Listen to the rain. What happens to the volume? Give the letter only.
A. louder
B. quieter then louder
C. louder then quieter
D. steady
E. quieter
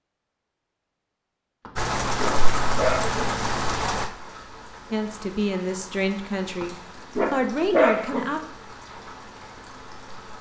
E.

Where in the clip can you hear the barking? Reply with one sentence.
The barking can be heard from 1.6 to 3.2 s and from 6.6 to 8.2 s.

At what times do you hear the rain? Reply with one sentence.
The rain can be heard from 1.8 to 10.3 s.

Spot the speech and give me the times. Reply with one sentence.
You can hear the speech from 4.9 to 8.4 s.